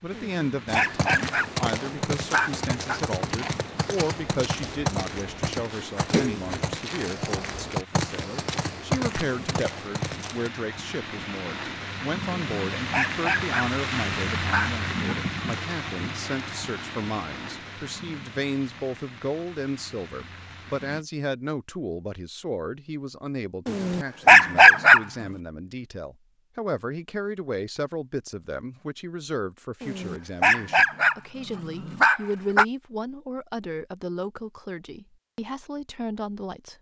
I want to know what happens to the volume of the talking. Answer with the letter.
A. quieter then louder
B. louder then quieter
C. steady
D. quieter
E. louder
C.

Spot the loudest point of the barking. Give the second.
25 s.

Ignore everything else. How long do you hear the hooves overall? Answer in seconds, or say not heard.
10 s.